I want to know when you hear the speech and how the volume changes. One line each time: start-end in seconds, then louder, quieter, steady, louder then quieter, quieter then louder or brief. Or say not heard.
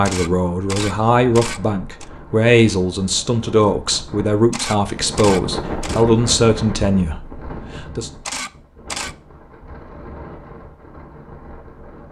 0.0-8.1 steady.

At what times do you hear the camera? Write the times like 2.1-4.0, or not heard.
0.1-2.0, 4.5-6.0, 8.2-9.2.